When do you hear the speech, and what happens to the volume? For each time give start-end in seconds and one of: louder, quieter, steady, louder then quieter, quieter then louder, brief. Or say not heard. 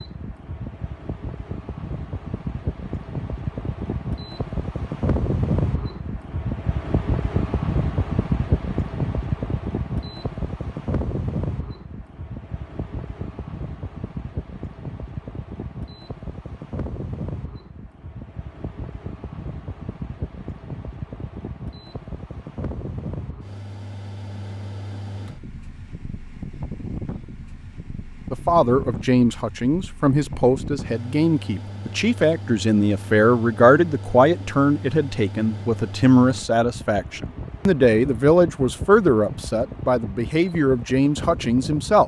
28.3-42.0 steady.